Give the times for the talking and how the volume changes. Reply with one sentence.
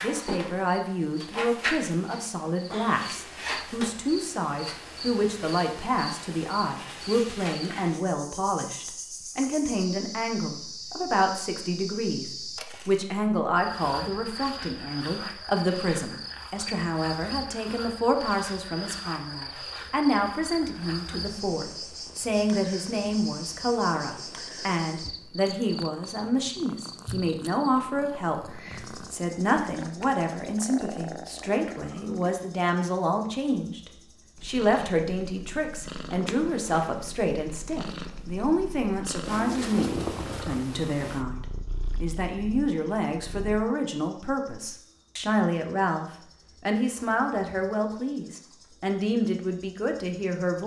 The talking can be heard from 0.0 to 50.6 s, at a steady volume.